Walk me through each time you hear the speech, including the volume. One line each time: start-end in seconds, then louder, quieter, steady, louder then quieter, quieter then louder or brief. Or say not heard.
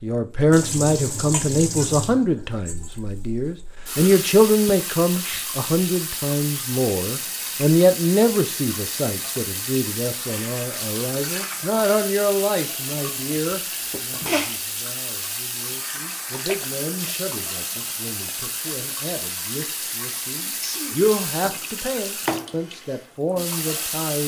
0.0-24.2 quieter then louder.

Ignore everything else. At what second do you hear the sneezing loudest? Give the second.
14 s.